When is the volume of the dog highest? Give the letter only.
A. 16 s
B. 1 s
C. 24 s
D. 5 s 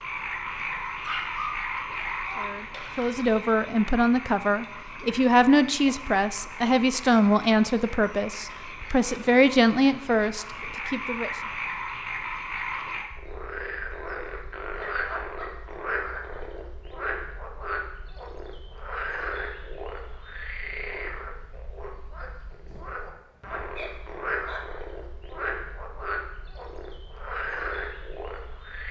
B.